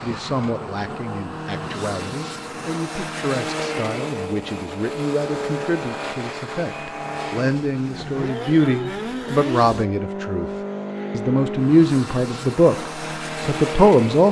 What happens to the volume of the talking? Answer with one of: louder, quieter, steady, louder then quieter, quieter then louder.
louder.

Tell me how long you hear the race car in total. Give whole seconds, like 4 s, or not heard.
14 s.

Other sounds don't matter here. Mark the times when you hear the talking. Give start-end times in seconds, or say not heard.
0.0-10.5, 11.1-14.2.